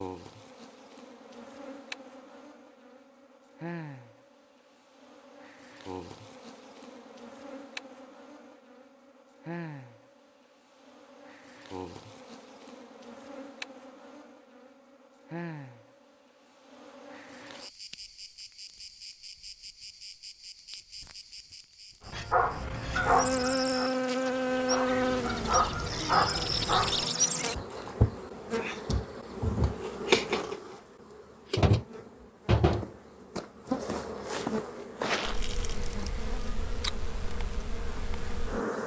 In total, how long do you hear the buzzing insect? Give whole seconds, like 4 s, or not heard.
39 s.